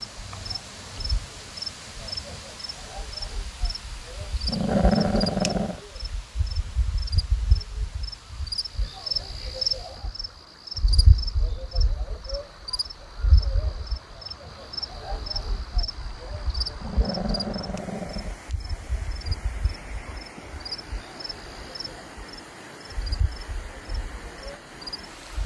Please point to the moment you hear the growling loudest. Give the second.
5 s.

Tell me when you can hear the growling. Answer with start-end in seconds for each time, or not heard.
4.5-5.8, 16.8-18.4.